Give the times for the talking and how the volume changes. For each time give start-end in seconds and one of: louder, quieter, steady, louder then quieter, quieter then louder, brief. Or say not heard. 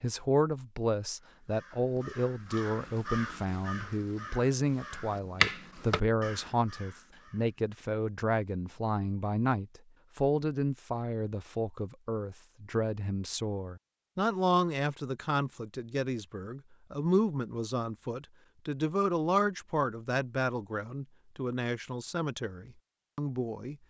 0.0-23.8 steady.